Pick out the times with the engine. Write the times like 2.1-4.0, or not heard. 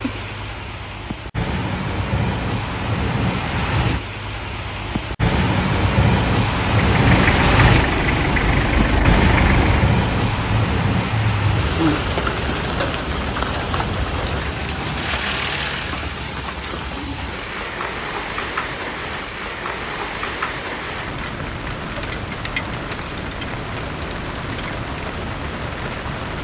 6.8-16.1.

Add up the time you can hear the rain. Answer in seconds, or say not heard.
26 s.